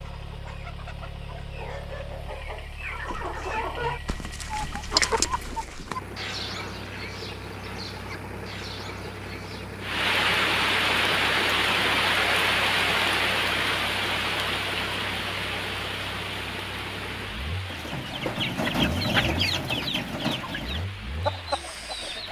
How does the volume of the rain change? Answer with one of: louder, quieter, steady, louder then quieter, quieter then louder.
quieter.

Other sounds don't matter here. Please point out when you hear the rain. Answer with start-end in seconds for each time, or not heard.
9.8-22.2.